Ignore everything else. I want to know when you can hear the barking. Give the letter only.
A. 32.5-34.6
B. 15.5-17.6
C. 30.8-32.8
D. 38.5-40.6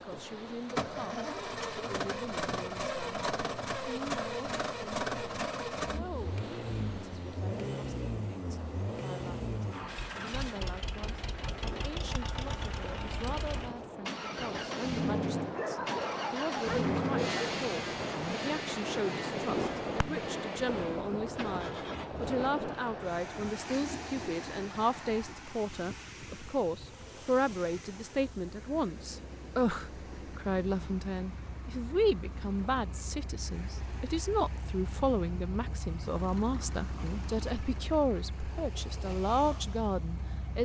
B.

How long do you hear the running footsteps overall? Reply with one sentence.
You can't hear the running footsteps here.